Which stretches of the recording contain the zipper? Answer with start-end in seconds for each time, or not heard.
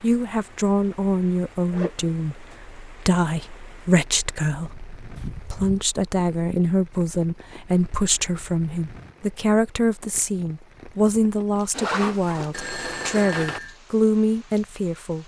1.7-2.5, 5.2-5.8, 11.7-13.6.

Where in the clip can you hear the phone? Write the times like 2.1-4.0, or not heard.
12.5-13.8.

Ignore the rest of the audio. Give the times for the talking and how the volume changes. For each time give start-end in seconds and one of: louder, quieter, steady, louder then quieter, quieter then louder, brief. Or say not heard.
0.0-15.2 steady.